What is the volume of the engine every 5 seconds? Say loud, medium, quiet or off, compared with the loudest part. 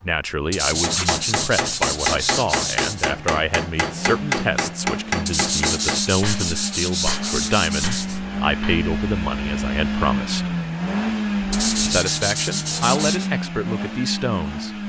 medium, loud, loud.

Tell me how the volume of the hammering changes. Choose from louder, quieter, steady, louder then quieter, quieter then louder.
quieter.